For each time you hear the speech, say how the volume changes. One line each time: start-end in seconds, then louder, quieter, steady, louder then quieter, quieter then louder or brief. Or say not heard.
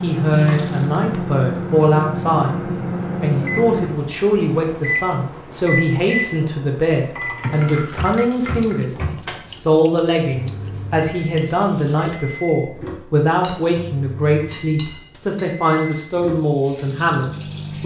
0.0-17.8 steady.